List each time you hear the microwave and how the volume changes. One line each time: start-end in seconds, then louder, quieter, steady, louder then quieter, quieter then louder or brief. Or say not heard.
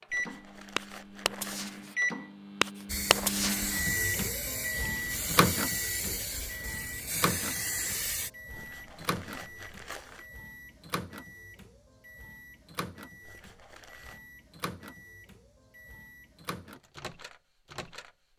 0.0-18.1 quieter.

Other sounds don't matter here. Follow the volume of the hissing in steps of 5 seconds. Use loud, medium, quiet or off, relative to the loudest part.
loud, loud, off, off.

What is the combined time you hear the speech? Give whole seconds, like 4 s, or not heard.
not heard.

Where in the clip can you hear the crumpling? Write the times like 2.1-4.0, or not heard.
0.1-1.8, 8.5-10.2, 13.2-14.2.